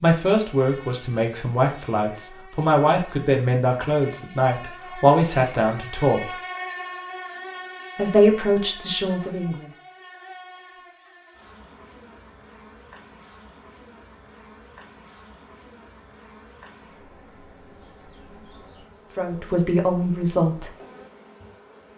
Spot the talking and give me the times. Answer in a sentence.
The talking can be heard from 0.0 to 6.3 s, from 8.0 to 9.7 s and from 19.1 to 20.7 s.